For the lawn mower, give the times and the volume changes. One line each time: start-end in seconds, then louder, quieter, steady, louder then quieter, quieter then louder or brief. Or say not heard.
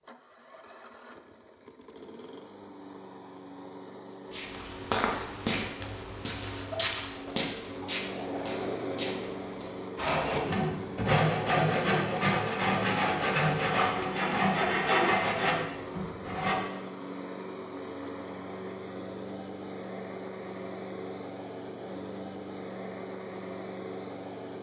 0.0-24.5 louder.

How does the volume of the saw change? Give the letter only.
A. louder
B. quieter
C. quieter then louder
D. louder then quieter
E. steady
E.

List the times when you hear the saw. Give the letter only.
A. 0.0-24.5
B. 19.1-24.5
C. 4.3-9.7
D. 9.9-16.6
D.